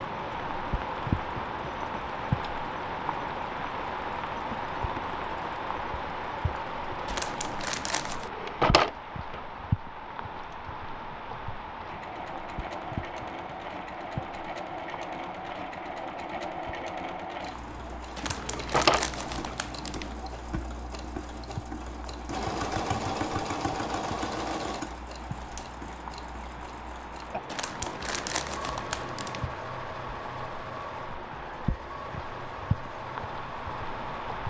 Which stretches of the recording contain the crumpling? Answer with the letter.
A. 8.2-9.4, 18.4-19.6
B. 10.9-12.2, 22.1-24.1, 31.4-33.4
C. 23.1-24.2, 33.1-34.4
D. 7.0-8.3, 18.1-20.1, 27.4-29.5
D.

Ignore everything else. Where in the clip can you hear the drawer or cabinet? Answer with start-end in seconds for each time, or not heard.
8.2-9.4, 18.4-19.6.